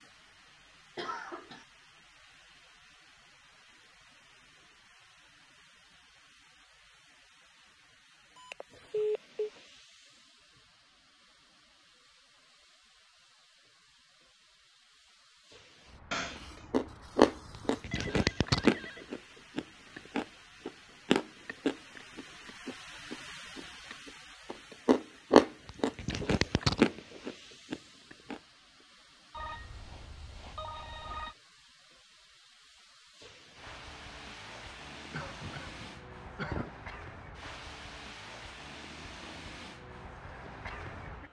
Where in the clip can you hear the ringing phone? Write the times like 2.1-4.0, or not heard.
8.3-9.5, 17.9-19.1, 29.3-31.4.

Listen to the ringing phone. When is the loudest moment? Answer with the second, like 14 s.
9 s.